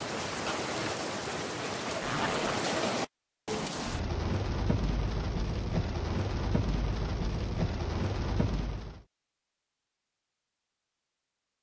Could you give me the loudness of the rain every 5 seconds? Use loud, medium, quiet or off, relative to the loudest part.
loud, loud, off.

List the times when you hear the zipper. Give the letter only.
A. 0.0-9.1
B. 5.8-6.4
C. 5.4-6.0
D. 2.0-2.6
D.